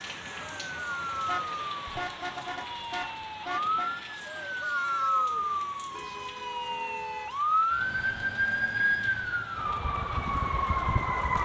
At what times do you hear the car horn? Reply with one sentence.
The car horn can be heard from 1.2 to 3.9 s and from 5.9 to 7.3 s.